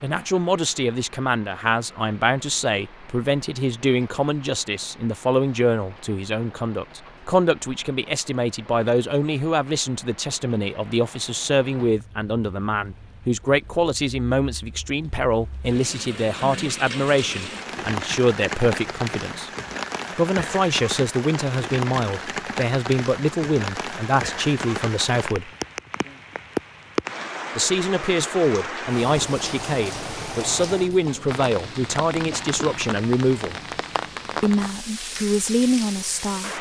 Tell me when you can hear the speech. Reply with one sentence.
The speech can be heard from 0.0 to 19.5 s, from 20.1 to 25.5 s, from 27.6 to 33.5 s and from 34.4 to 36.5 s.